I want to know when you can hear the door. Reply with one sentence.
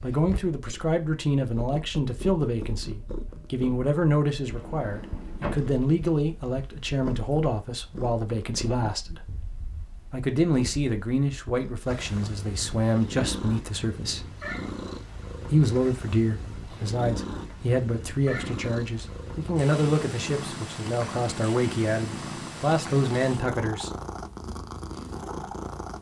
You can hear the door from 4.5 to 5.7 s.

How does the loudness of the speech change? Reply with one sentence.
The loudness of the speech stays about the same.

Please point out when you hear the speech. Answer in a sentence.
You can hear the speech from 0.0 to 9.2 s, from 10.1 to 14.2 s and from 15.5 to 23.9 s.